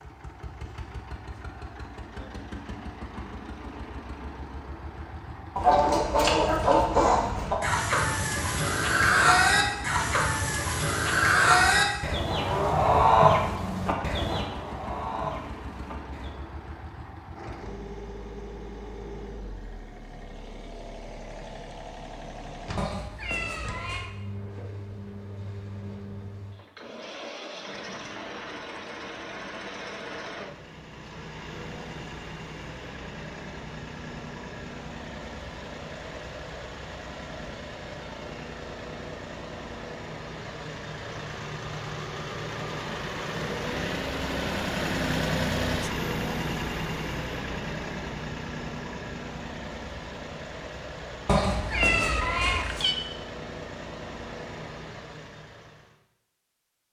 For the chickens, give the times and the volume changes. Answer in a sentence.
You can hear the chickens from 5.5 to 16.4 s, getting quieter.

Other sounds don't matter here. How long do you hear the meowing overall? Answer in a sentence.
You can hear the meowing for 3 seconds altogether.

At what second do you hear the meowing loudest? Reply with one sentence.
The loudest moment of the meowing is at 52 seconds.